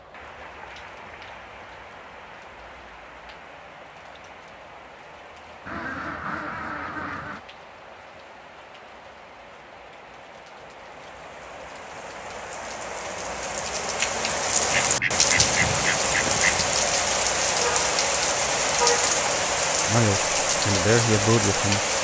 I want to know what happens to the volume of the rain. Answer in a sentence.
The loudness of the rain goes up.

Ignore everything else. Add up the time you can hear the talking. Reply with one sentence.
You can hear the talking for 2 seconds altogether.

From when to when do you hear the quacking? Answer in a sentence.
The quacking can be heard from 5.7 to 7.4 s and from 14.7 to 16.8 s.